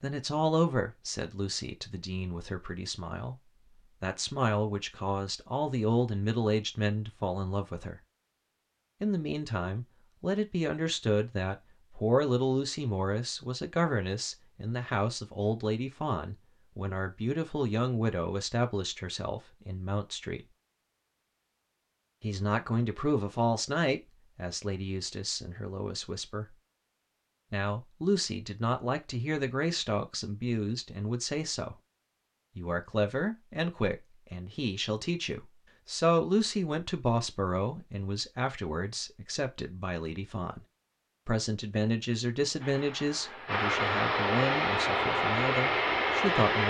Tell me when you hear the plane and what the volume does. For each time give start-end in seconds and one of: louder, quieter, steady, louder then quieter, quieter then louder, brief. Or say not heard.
42.5-46.6 louder.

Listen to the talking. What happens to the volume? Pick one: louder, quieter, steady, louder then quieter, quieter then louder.
steady.